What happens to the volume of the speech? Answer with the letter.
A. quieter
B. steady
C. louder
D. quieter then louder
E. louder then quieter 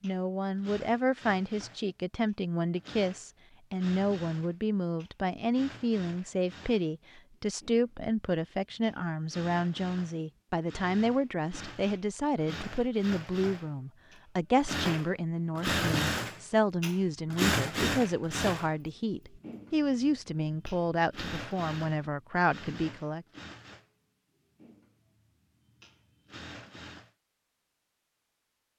B.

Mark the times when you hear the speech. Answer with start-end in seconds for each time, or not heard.
0.0-23.2.